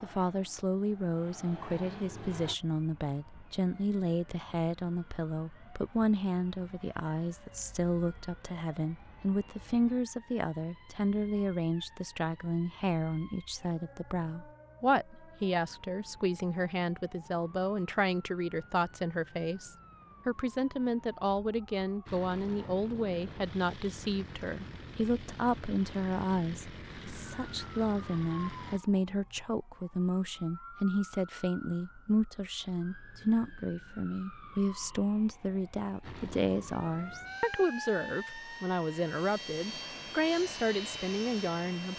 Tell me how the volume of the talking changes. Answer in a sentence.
The loudness of the talking stays about the same.